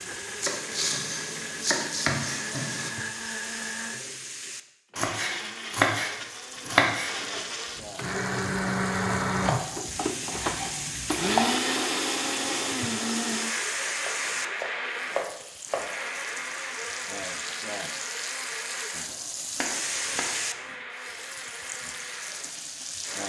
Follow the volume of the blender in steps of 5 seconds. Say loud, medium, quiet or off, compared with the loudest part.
medium, loud, loud, medium, medium.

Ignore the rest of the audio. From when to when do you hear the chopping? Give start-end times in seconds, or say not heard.
0.4-2.9, 5.0-7.1, 9.4-11.6, 14.0-16.0, 19.1-20.8.